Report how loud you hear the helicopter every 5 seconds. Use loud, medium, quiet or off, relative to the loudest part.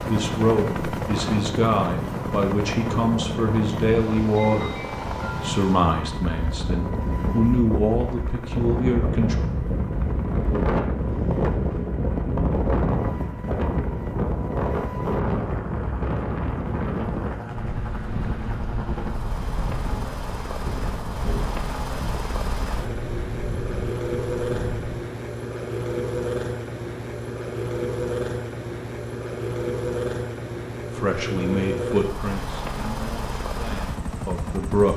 loud, medium, medium, medium, loud, loud, loud.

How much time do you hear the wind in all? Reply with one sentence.
The wind can be heard for 25 seconds in total.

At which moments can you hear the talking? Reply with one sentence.
You can hear the talking from 0.0 to 9.3 s and from 30.9 to 34.9 s.